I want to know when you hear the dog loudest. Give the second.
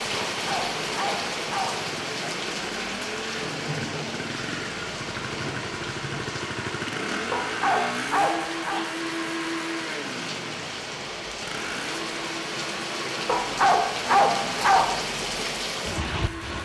14 s.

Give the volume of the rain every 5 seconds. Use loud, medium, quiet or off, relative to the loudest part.
loud, medium, loud, loud.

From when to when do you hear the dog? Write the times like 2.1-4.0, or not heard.
0.2-1.9, 7.3-8.8, 13.2-15.1.